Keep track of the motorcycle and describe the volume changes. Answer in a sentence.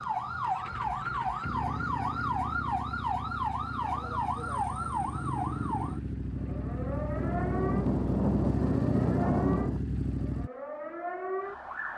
The loudness of the motorcycle goes up.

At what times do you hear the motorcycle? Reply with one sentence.
The motorcycle can be heard from 0.0 to 10.5 s.